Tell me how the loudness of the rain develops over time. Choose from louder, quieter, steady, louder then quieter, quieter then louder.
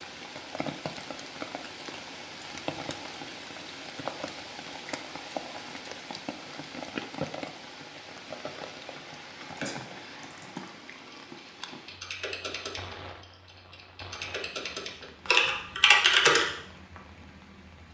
quieter.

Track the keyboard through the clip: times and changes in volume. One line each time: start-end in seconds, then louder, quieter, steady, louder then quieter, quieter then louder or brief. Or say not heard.
9.6-16.4 louder.